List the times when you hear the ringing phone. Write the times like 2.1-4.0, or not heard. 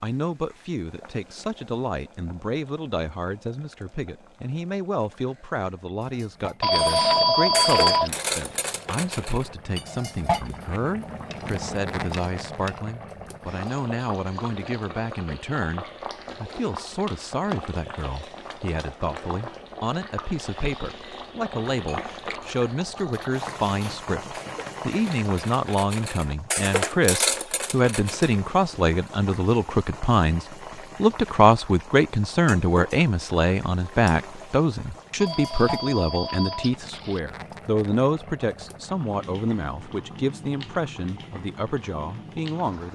6.6-8.1, 35.2-37.2.